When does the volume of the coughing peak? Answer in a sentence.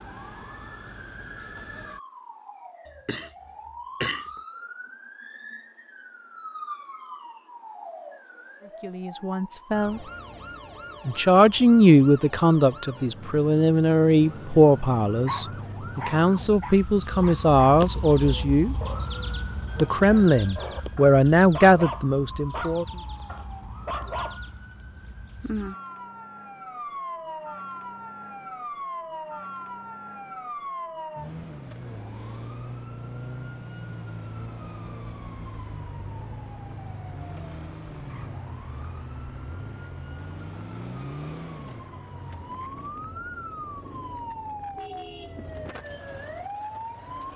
The volume of the coughing peaks at 4 seconds.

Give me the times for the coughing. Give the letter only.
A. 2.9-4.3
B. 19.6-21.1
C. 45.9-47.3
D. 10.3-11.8
A.